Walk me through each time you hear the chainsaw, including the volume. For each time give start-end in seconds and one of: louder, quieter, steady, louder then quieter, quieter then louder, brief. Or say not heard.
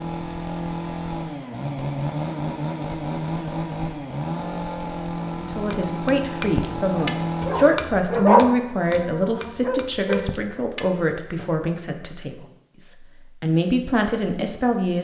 0.0-8.0 steady.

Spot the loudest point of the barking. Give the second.
8 s.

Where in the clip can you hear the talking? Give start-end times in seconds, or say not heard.
5.4-14.9.